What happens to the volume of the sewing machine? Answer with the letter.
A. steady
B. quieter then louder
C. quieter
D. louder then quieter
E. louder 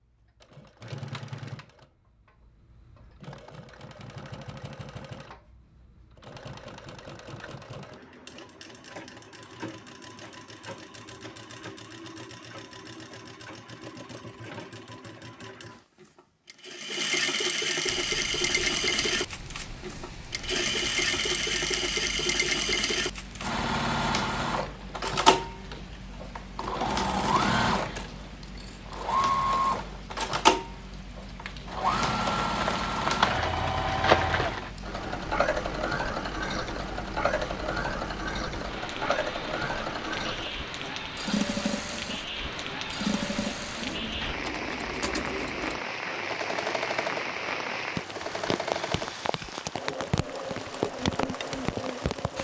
D.